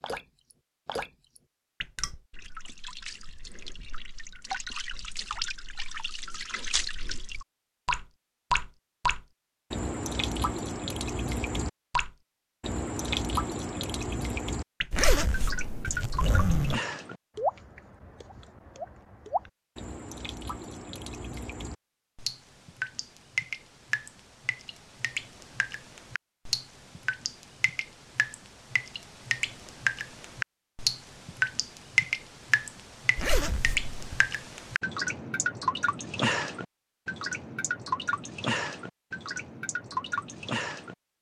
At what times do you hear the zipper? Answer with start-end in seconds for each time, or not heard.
14.9-16.8, 33.1-34.2.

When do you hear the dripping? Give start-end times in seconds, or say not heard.
0.0-41.0.